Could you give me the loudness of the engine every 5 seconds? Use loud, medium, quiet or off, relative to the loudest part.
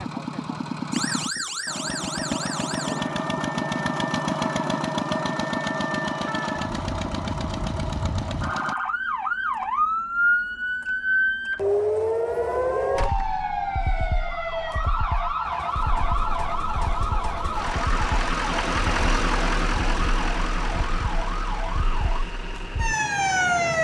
loud, loud, off, loud, medium.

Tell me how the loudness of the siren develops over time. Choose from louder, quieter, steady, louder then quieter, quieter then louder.
louder then quieter.